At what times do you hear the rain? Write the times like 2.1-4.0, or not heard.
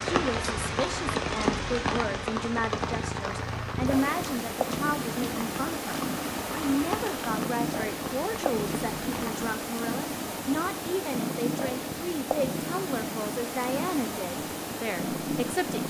0.0-9.5.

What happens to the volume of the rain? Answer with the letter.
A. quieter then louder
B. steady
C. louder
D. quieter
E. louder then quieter
D.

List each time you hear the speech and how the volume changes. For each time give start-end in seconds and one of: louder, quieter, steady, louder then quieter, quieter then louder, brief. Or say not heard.
0.1-15.8 steady.